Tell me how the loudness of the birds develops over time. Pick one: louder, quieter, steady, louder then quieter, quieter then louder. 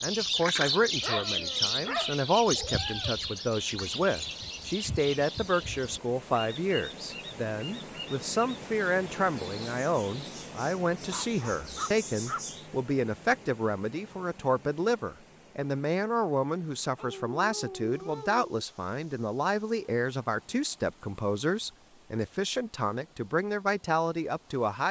quieter.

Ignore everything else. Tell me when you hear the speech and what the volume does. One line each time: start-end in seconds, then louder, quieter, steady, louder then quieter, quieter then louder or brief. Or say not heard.
0.0-24.8 steady.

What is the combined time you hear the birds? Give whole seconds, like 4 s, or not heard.
13 s.